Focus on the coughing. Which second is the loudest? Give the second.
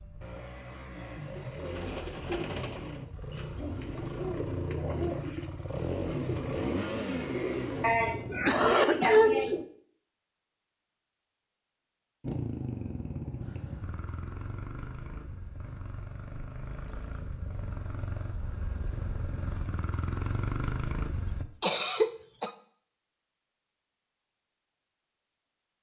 9 s.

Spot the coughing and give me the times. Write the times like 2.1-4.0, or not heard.
7.8-9.6, 21.6-22.5.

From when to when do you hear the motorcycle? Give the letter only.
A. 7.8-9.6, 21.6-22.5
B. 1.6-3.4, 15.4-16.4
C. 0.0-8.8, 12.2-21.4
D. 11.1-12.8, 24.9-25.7
C.